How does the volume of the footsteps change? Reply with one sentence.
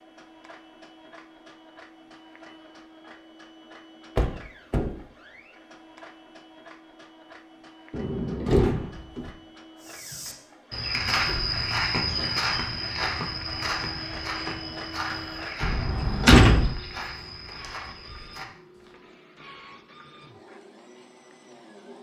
The volume of the footsteps goes down.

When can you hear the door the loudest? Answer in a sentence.
The volume of the door peaks at 16 seconds.